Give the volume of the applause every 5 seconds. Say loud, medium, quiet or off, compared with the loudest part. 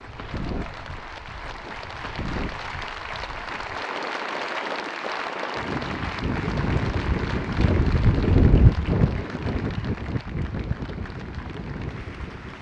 loud, loud, medium.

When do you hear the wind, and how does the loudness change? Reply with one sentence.
You can hear the wind from 0.0 to 12.5 s, getting louder then quieter.